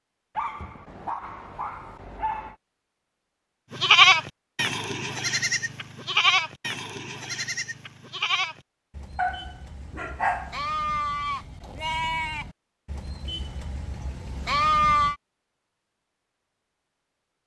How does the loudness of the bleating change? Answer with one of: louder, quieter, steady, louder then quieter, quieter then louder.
quieter then louder.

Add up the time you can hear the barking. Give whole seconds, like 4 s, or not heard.
4 s.